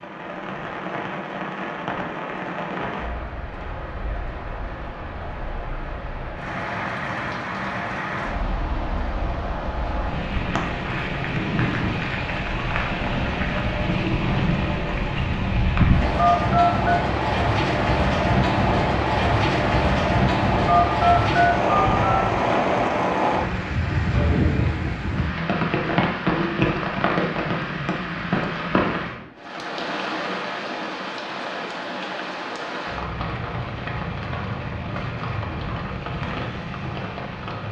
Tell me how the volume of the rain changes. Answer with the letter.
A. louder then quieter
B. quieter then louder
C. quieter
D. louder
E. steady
A.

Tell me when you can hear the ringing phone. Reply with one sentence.
You can hear the ringing phone from 16.1 to 17.1 s and from 20.6 to 22.1 s.